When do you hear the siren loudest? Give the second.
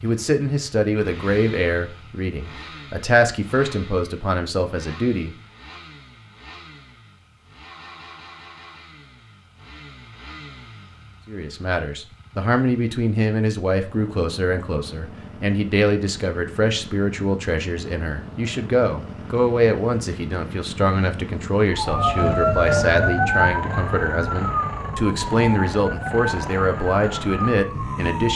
23 s.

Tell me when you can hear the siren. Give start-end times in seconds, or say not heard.
21.7-28.3.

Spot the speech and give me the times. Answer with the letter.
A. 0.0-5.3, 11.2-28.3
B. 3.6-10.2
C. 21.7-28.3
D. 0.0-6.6
A.